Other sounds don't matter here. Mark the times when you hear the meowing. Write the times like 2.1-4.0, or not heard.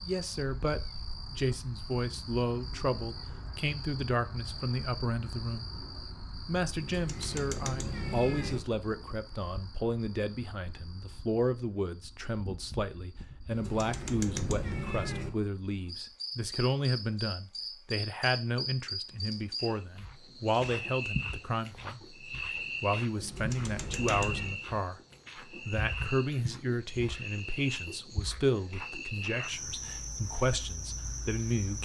6.8-8.6, 13.4-15.3, 23.2-24.6.